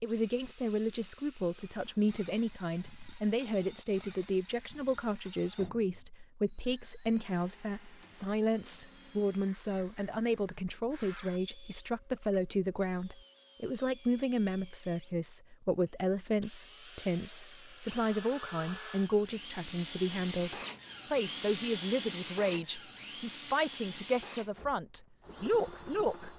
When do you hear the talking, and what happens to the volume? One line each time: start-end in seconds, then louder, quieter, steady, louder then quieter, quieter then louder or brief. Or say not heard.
0.0-26.3 steady.